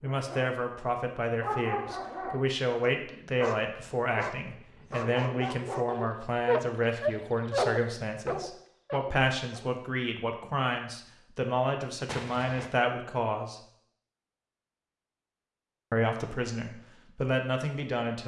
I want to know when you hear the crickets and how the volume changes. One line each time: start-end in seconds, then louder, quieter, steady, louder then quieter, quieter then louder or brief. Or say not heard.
not heard.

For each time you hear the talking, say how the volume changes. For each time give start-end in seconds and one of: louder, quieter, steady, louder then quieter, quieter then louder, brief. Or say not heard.
0.0-13.6 steady
15.9-18.2 brief.